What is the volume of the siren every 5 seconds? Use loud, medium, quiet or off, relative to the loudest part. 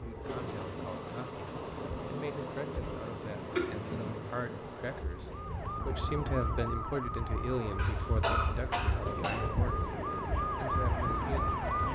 off, medium, loud.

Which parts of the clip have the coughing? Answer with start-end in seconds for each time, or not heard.
3.5-4.1, 7.8-9.5.